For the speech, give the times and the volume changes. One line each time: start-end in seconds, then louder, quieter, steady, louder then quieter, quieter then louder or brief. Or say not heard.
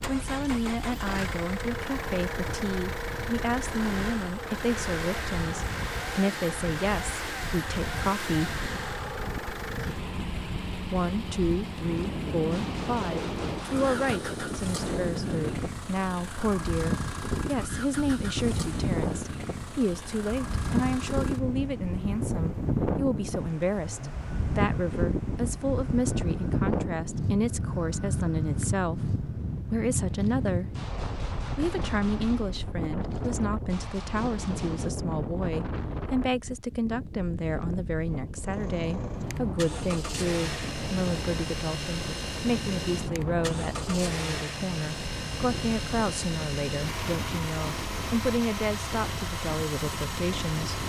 0.1-8.6 steady
10.9-30.8 steady
31.6-50.8 steady.